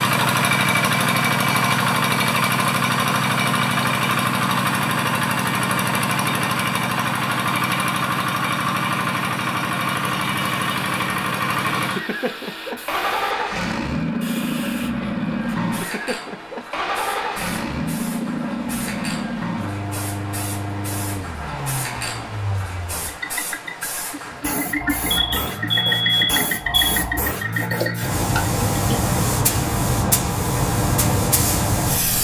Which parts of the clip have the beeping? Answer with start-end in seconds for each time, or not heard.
25.1-27.0.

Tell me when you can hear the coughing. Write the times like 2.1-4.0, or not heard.
not heard.